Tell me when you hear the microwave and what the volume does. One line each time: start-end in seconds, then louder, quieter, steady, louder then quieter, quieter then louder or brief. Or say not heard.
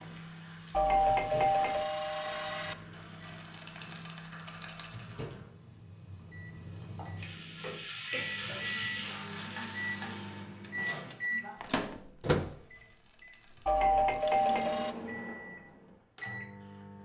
0.0-16.9 louder then quieter.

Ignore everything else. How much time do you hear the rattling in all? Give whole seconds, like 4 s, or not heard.
5 s.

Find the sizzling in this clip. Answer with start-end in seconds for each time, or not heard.
0.0-10.4.